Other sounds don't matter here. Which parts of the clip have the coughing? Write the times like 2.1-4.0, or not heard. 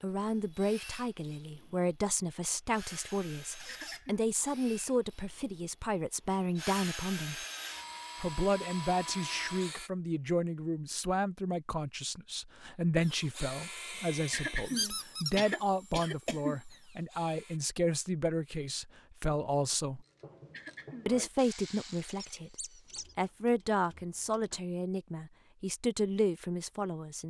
3.6-4.3, 14.3-16.6, 20.5-21.2.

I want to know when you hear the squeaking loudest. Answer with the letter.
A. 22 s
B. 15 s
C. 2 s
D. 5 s
B.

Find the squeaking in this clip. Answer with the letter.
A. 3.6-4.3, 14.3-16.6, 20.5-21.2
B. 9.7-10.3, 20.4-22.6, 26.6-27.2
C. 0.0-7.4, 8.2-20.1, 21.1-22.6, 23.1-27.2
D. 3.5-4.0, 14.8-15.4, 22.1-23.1
D.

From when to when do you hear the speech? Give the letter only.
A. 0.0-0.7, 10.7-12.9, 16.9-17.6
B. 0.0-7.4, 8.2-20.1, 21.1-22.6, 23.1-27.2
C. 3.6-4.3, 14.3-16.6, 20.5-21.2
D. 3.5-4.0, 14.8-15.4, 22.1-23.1
B.